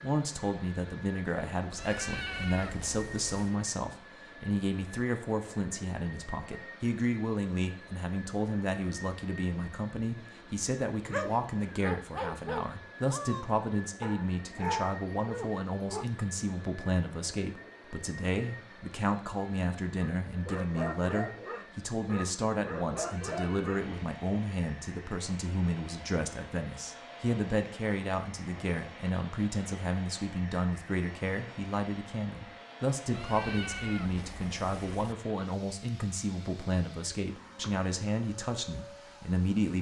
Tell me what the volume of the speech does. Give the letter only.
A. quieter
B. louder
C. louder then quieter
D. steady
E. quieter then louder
D.